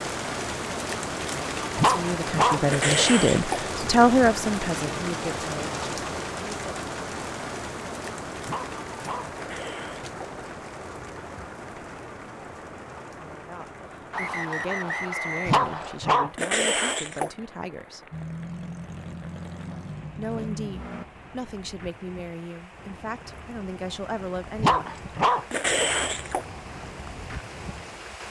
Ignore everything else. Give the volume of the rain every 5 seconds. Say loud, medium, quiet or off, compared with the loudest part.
loud, loud, medium, quiet, quiet, medium.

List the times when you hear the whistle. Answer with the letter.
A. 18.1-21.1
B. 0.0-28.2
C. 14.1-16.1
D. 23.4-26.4
C.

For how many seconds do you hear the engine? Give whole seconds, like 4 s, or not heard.
3 s.